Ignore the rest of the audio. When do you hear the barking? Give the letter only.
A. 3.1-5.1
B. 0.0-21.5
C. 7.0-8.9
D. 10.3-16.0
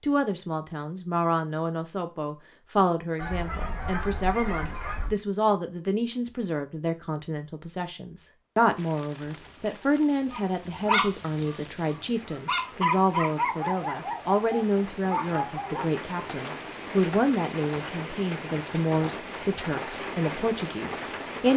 D.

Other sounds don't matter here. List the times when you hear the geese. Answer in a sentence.
The geese can be heard from 3.1 to 5.1 s.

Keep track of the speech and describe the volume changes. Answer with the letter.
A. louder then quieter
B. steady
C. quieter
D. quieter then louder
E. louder
B.